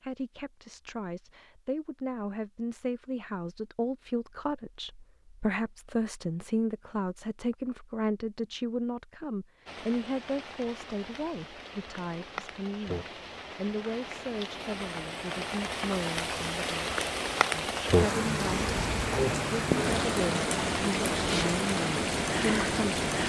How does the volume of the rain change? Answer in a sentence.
The loudness of the rain goes up.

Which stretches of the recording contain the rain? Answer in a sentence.
You can hear the rain from 9.7 to 23.2 s.